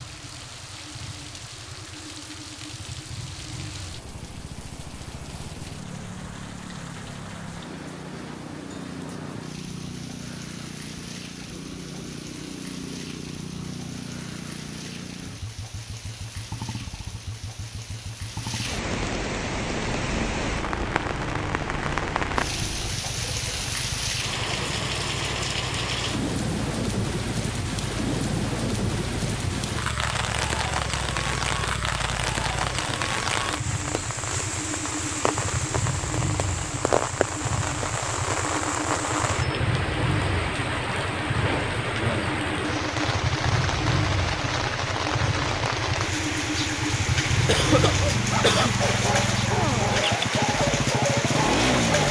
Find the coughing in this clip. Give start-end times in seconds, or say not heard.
47.5-48.8.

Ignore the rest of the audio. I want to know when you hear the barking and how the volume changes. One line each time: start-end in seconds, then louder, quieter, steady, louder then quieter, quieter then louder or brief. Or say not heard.
47.8-52.0 steady.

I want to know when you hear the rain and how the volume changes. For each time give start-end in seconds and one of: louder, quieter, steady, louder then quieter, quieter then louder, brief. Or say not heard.
0.0-52.0 louder.